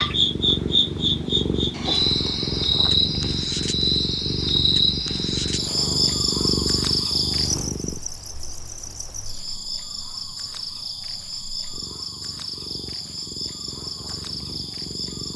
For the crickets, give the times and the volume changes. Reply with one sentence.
The crickets can be heard from 0.0 to 15.3 s, getting quieter.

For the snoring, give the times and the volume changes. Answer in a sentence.
The snoring can't be heard in this clip.